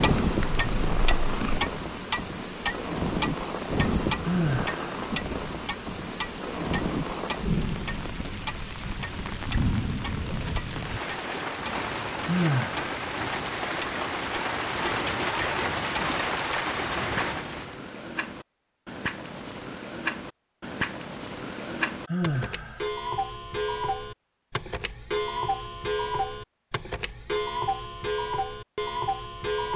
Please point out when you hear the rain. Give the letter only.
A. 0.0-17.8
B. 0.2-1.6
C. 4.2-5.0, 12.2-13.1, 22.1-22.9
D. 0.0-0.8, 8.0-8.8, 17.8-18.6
A.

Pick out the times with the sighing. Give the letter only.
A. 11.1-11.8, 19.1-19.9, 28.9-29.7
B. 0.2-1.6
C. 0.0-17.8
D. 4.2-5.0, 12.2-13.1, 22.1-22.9
D.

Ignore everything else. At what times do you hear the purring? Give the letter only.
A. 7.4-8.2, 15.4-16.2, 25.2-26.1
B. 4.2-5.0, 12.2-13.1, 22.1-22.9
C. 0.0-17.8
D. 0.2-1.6
D.